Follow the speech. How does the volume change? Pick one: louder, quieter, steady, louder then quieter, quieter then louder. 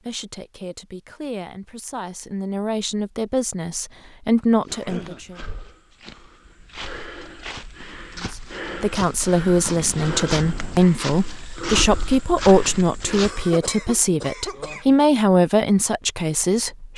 louder.